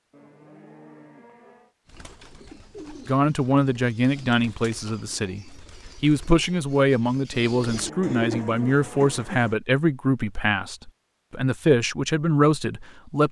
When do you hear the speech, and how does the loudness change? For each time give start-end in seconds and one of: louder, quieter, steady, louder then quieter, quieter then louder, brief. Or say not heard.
3.0-13.2 steady.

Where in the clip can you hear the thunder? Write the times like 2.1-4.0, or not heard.
not heard.